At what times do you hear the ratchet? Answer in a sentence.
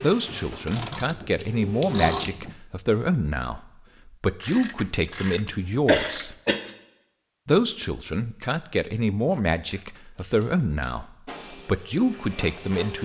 The ratchet can be heard from 0.2 to 2.5 s, from 4.4 to 6.8 s and from 9.3 to 10.5 s.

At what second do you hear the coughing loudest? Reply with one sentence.
The loudest moment of the coughing is at 6 seconds.